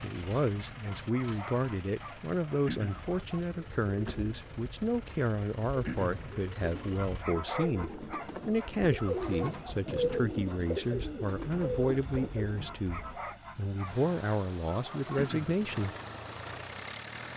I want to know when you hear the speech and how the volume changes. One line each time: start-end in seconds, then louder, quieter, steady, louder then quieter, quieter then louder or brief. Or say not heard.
0.0-15.9 steady.